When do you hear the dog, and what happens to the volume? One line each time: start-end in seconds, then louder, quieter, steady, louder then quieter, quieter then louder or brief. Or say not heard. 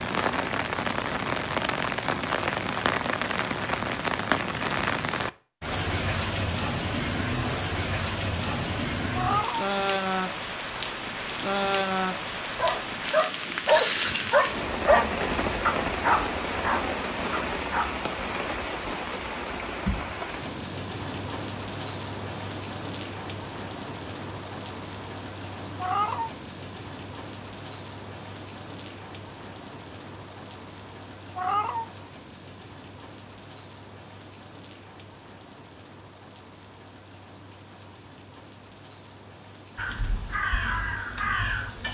12.6-17.9 quieter.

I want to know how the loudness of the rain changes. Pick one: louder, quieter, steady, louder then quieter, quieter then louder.
quieter.